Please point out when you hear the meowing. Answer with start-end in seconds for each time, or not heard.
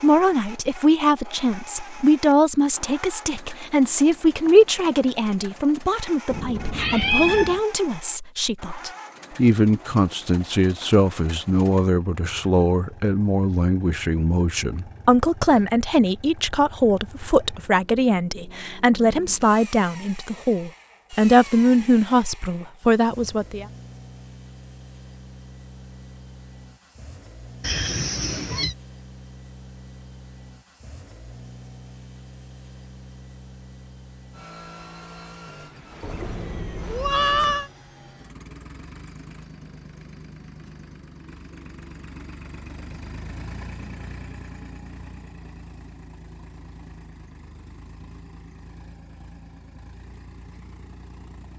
6.3-7.6, 27.6-28.8, 36.0-37.7.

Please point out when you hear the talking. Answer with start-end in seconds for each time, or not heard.
0.0-23.6.